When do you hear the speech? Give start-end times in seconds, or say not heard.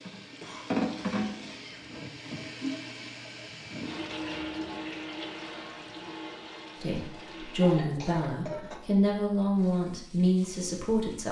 6.8-11.2.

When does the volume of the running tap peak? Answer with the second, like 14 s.
1 s.